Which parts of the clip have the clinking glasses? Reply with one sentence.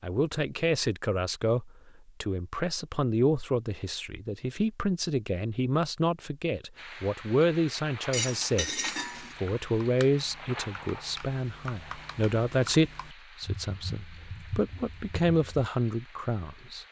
You can hear the clinking glasses from 8.1 to 9.3 s.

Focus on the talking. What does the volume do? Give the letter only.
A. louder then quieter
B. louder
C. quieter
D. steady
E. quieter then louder
D.